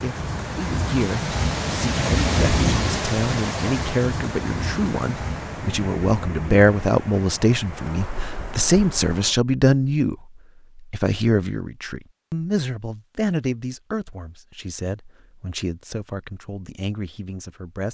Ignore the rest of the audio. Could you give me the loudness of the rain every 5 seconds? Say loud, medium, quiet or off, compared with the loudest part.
loud, medium, off, off.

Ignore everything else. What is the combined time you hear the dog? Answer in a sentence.
The dog can't be heard in this clip.